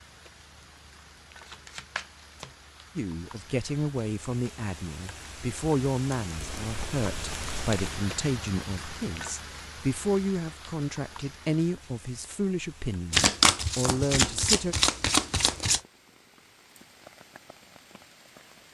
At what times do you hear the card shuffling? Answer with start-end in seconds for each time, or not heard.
1.4-2.5, 6.4-7.9, 13.1-15.8.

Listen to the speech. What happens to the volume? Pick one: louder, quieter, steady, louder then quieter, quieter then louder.
steady.